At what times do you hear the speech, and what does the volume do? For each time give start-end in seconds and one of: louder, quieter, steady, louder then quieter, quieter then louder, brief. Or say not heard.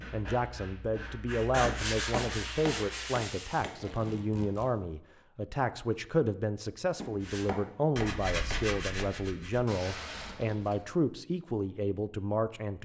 0.0-12.7 steady.